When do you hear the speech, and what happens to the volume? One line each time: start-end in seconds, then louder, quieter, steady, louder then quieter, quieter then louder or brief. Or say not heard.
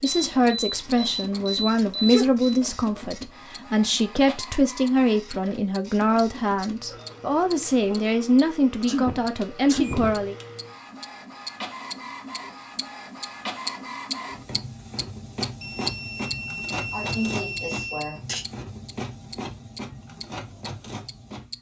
0.0-10.3 steady.